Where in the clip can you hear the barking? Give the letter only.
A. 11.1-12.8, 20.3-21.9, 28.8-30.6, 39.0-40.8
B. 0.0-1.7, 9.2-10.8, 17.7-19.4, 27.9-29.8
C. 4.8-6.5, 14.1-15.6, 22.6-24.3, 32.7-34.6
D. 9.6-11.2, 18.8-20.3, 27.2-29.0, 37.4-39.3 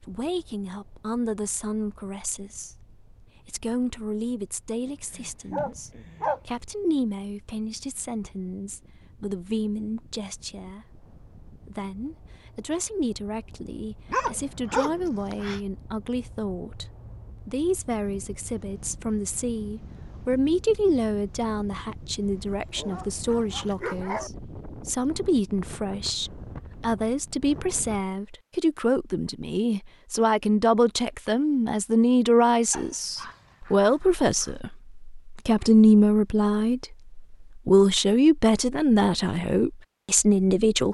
C.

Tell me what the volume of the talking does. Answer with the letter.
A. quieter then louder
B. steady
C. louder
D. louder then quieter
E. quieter
C.